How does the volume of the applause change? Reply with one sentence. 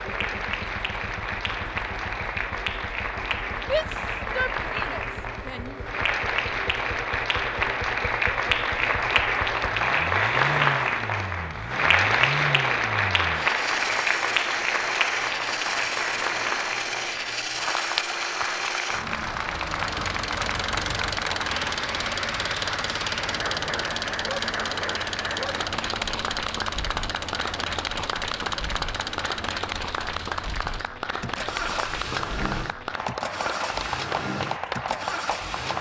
The volume of the applause goes up, then down.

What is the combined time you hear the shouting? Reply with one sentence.
The shouting can be heard for 2 seconds in total.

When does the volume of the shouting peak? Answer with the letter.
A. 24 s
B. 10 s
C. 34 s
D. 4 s
D.